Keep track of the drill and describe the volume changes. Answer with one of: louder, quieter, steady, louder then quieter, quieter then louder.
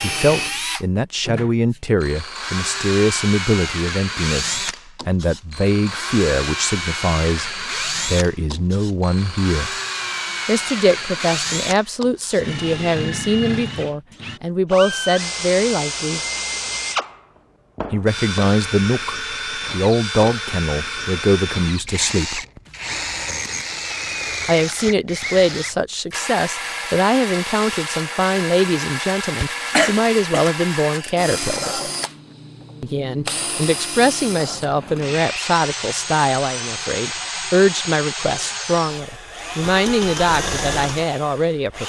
steady.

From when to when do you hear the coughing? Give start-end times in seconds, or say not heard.
29.7-30.4.